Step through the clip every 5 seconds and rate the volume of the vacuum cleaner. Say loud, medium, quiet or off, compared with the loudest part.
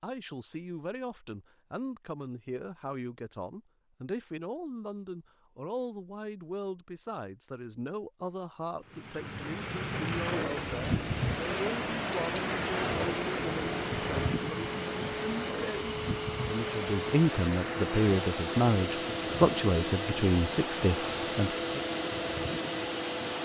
off, off, medium, loud, loud.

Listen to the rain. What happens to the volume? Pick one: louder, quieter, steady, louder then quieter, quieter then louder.
quieter.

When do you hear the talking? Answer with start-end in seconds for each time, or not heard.
0.0-21.8.